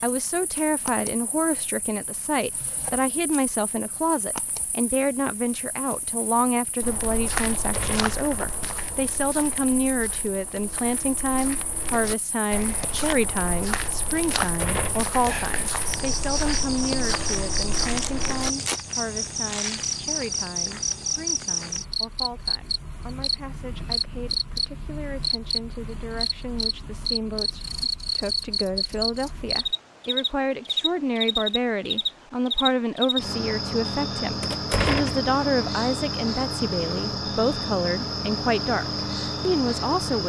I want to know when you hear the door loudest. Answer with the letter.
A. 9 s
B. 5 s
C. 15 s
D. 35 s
D.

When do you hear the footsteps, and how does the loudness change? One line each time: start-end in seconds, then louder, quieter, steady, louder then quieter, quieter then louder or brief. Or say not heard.
6.8-18.8 quieter then louder.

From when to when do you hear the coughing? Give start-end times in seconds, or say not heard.
not heard.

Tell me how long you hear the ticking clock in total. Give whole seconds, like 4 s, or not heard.
not heard.